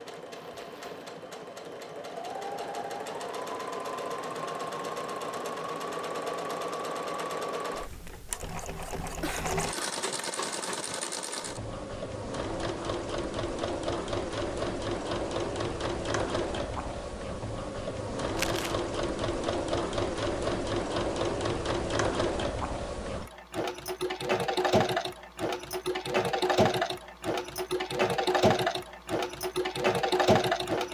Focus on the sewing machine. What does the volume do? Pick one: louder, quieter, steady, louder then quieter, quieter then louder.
louder.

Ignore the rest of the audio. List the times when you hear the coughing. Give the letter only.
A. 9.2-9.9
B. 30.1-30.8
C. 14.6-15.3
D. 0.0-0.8
A.